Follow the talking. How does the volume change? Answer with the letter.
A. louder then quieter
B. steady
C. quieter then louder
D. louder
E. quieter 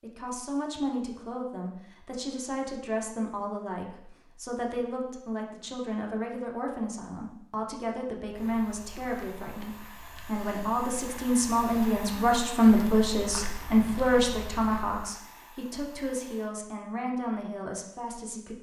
A.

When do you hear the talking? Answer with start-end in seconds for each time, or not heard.
0.0-18.5.